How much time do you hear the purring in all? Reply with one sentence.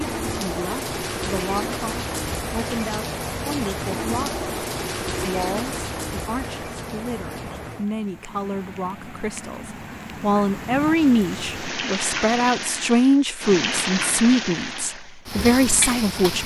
You can't hear the purring here.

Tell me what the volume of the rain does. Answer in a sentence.
The volume of the rain goes down, then up.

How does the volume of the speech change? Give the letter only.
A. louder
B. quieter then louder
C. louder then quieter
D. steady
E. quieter
A.